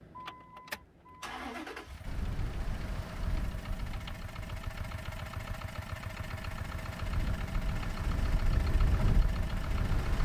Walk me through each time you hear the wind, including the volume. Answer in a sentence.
The wind can be heard from 2.0 to 10.2 s, getting quieter then louder.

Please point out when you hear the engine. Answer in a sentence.
You can hear the engine from 0.0 to 10.2 s.